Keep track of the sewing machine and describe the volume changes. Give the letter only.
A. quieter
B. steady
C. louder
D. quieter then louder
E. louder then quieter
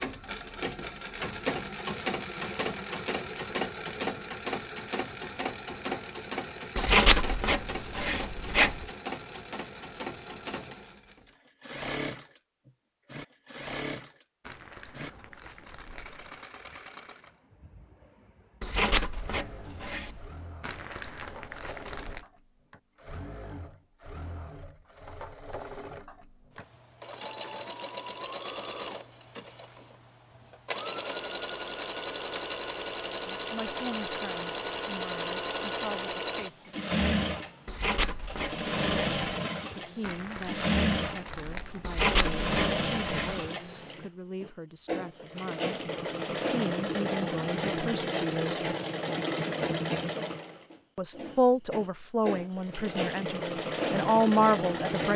D.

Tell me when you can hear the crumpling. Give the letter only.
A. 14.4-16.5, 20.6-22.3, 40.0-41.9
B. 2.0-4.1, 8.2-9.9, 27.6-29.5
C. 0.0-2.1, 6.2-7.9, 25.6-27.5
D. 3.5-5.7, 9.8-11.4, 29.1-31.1
A.